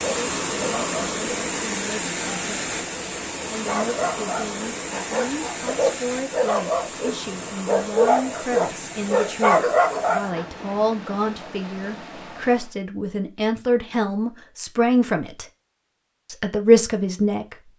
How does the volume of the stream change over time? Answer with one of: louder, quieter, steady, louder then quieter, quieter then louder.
quieter.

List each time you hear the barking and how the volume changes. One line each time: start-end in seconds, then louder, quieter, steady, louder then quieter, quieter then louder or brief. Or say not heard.
0.0-1.2 brief
3.5-10.4 louder.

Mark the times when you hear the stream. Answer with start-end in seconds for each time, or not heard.
0.0-12.8.